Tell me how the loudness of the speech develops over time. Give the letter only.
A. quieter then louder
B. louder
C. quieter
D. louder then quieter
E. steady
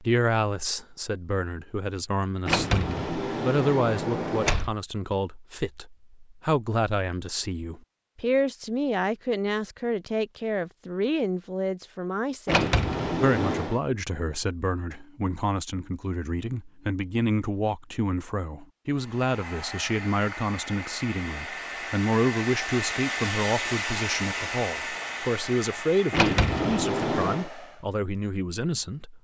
E.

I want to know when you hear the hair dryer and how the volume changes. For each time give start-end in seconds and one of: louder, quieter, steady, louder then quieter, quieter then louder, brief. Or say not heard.
18.9-27.9 louder then quieter.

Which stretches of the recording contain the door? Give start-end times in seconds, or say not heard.
2.5-4.8, 12.4-13.8, 26.1-27.5.